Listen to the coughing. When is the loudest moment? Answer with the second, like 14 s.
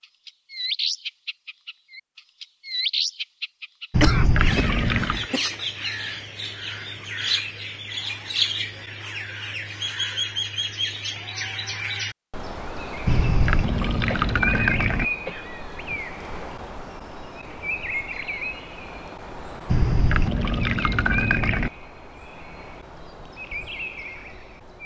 4 s.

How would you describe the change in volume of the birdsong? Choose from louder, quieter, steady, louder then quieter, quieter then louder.
quieter.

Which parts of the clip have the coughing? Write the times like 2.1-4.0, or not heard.
4.0-5.5, 14.1-16.0.